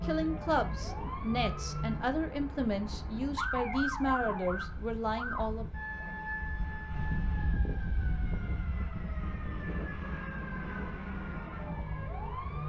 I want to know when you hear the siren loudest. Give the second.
4 s.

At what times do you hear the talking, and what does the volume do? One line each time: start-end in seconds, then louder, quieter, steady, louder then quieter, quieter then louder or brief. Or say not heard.
0.0-5.7 steady.